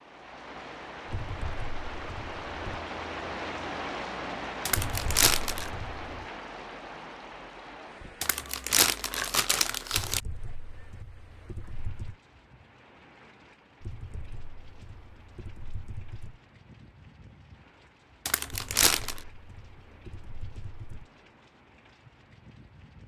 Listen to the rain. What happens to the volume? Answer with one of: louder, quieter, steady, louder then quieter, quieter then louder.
quieter.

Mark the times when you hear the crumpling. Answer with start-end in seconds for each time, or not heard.
4.7-5.7, 8.2-10.2, 18.2-19.2.